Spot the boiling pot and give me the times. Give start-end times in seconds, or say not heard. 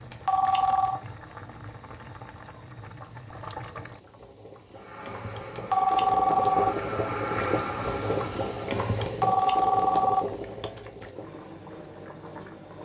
0.0-12.8.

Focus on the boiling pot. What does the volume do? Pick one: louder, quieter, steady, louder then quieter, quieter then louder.
louder then quieter.